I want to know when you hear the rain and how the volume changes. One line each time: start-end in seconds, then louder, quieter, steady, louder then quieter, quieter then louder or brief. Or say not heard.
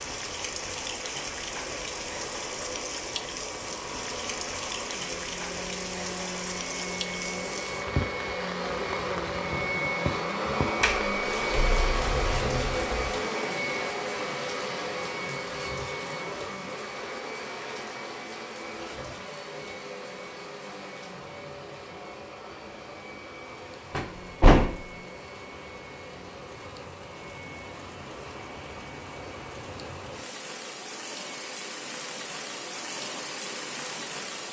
0.0-34.4 quieter then louder.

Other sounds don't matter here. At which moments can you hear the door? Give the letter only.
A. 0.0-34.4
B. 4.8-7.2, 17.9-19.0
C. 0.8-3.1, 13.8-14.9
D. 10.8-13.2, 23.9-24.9
D.